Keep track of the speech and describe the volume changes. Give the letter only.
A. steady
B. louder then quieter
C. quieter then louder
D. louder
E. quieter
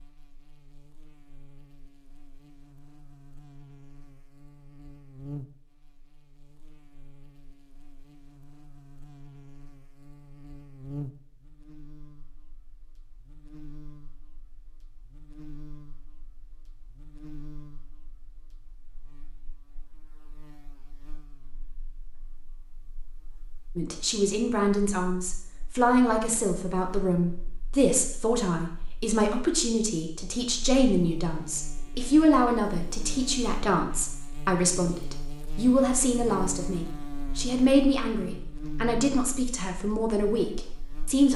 A.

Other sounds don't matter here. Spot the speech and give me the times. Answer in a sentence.
The speech can be heard from 23.8 to 41.3 s.